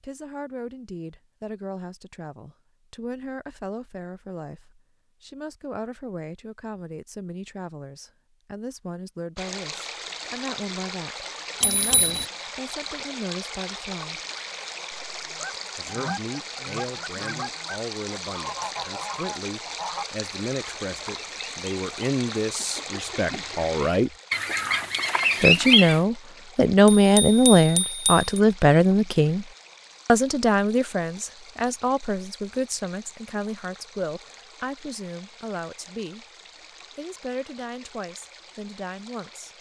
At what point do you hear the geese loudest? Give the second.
26 s.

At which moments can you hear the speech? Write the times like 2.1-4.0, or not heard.
0.0-14.2, 15.8-24.1, 25.4-29.4, 30.1-36.2, 37.0-39.5.